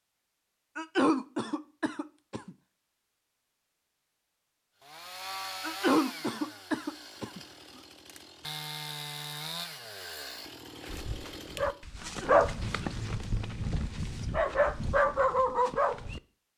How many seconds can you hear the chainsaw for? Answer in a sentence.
You can hear the chainsaw for 7 seconds altogether.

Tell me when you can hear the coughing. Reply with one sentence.
The coughing can be heard from 0.8 to 2.5 s, from 5.6 to 7.4 s and from 12.0 to 12.5 s.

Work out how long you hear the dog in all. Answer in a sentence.
You can hear the dog for 5 seconds altogether.